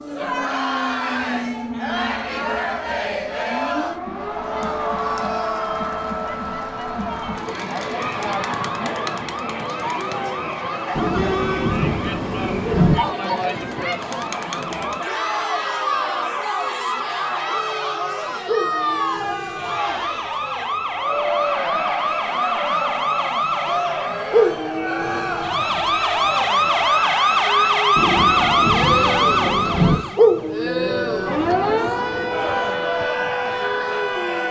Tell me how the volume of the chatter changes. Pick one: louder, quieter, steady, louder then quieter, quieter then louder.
steady.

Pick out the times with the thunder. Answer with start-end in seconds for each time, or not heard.
10.9-12.9, 27.9-29.9.